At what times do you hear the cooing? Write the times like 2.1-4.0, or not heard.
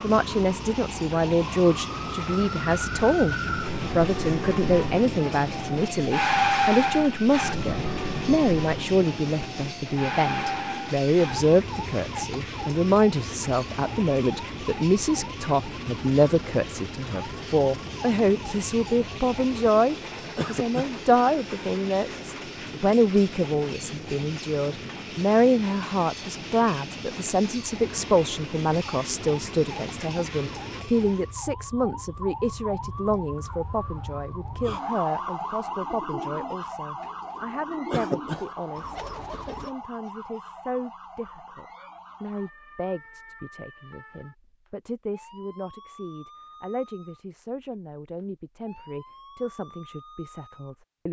34.6-39.8.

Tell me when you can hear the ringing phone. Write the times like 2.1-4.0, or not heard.
not heard.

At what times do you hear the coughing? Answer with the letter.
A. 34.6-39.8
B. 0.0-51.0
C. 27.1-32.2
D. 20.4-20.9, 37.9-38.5
D.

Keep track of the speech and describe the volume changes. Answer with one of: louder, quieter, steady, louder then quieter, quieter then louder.
quieter.